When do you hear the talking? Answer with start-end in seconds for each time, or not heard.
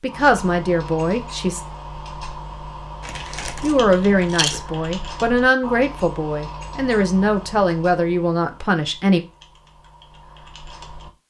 0.0-1.6, 3.6-9.2.